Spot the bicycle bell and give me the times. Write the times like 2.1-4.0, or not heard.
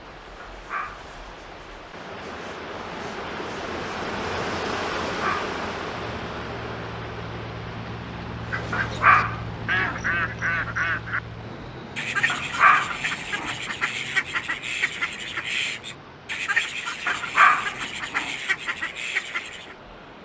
not heard.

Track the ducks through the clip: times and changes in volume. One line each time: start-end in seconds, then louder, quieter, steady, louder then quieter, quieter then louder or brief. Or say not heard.
8.4-19.8 steady.